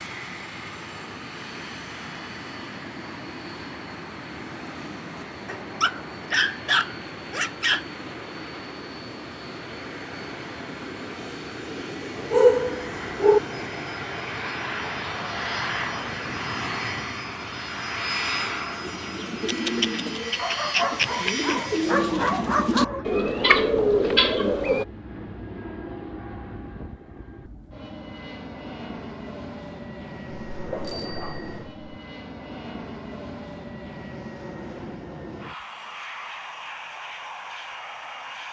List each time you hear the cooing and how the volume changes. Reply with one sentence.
The cooing can be heard from 18.8 to 24.9 s, getting louder.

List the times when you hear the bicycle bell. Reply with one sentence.
The bicycle bell can be heard from 30.8 to 31.7 s.